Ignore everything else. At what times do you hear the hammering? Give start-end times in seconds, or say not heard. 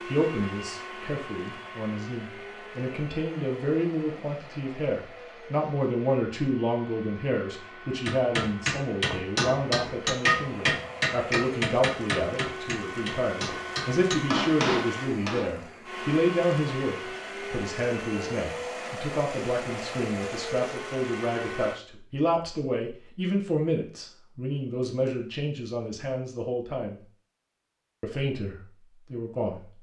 8.1-15.4.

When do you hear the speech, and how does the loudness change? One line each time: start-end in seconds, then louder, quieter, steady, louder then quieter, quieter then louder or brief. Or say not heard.
0.1-27.0 steady
28.0-29.6 brief.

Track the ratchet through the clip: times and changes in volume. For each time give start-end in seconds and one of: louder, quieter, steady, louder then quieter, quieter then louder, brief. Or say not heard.
not heard.